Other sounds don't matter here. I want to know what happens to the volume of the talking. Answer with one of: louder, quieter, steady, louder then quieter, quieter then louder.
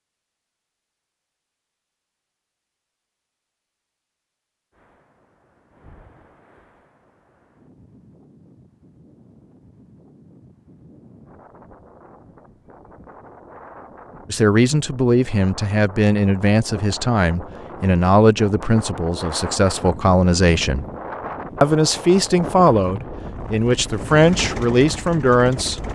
steady.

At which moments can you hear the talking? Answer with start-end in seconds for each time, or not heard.
14.3-20.9, 21.6-25.9.